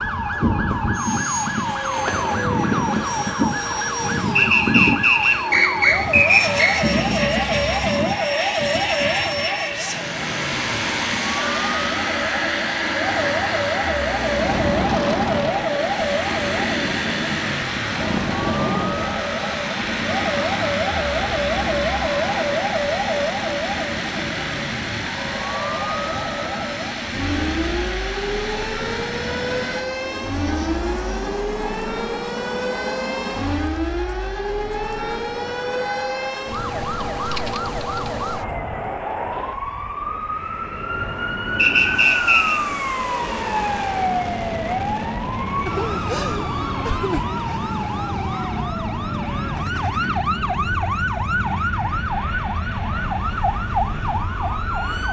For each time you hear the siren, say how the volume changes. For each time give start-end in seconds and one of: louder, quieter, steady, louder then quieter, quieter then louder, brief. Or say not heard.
0.0-55.0 steady.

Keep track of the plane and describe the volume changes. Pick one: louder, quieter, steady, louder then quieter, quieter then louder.
quieter.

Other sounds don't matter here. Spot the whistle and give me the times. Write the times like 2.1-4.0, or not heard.
4.3-6.8, 41.5-42.6.